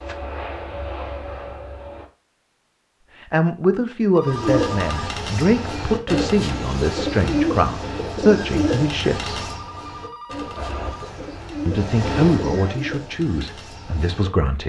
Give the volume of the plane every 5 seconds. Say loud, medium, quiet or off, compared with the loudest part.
loud, off, loud.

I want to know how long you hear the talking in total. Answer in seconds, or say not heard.
9 s.